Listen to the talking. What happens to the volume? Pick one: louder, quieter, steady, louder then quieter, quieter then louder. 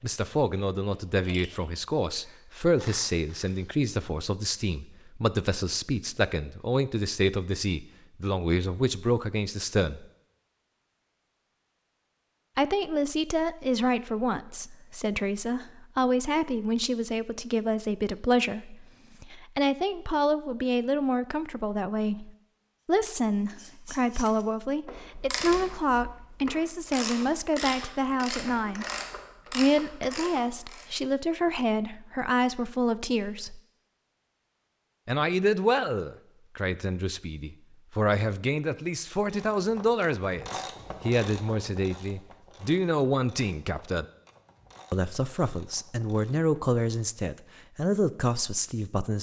steady.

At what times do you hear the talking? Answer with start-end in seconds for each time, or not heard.
0.0-10.1, 12.6-28.9, 29.5-33.6, 35.0-44.0, 44.9-49.1.